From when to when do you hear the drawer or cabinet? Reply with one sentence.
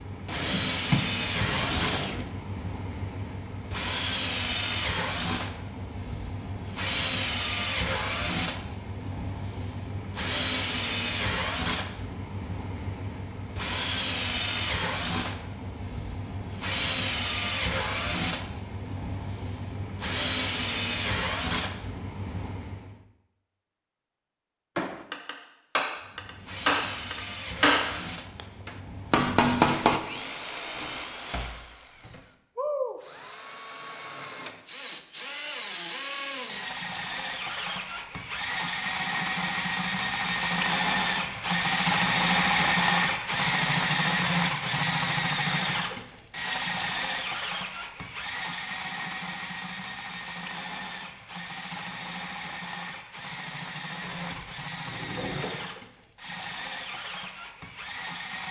You can hear the drawer or cabinet from 0.2 to 2.2 s, from 30.0 to 32.2 s and from 54.0 to 55.5 s.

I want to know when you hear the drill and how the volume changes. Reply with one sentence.
You can hear the drill from 0.0 to 23.0 s, at a steady volume; and from 26.0 to 58.4 s, getting louder then quieter.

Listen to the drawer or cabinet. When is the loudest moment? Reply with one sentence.
The volume of the drawer or cabinet peaks at 1 second.